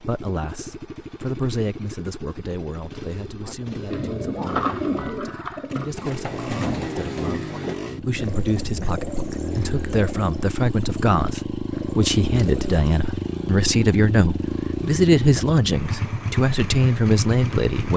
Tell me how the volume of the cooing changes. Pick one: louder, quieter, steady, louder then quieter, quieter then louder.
quieter.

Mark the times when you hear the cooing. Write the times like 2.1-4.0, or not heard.
3.4-12.9.